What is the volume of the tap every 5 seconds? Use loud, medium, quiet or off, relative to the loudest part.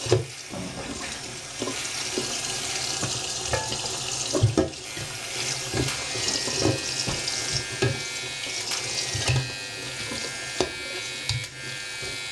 loud, loud, medium.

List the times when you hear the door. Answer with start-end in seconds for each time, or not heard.
0.5-1.4, 6.2-7.2.